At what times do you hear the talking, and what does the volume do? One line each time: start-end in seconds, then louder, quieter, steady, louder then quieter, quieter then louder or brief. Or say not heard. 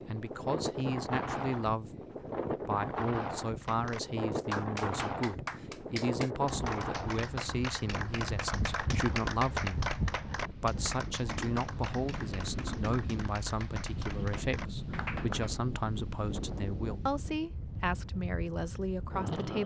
0.1-1.9 brief
2.6-19.6 steady.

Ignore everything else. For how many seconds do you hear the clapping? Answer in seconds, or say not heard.
12 s.